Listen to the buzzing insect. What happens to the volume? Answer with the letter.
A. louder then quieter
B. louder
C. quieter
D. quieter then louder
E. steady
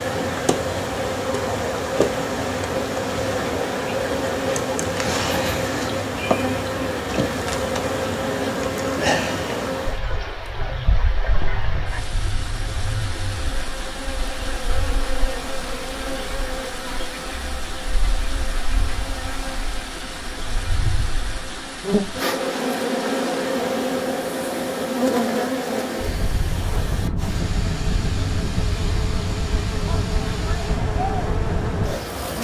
D.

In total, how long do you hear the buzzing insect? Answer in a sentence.
You can hear the buzzing insect for 32 seconds altogether.